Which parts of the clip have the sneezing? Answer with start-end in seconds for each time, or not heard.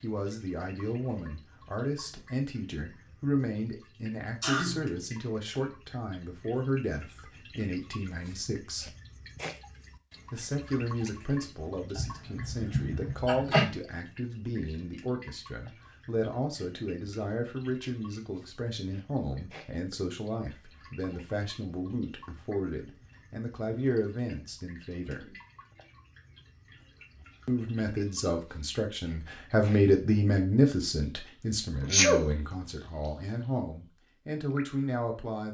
4.4-5.0, 11.9-13.7, 31.8-32.2.